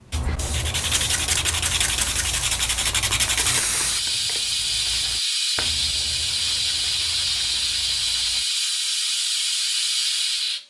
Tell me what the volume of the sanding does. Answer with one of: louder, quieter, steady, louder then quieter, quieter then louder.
quieter.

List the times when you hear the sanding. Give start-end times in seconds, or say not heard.
0.1-8.4.